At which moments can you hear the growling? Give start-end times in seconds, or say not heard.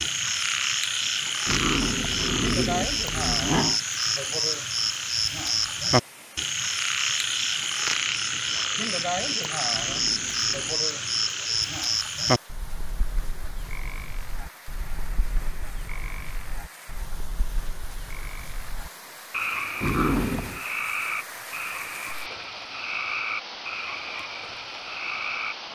1.4-3.8, 9.7-10.8, 19.8-20.6.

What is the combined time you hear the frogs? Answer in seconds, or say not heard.
26 s.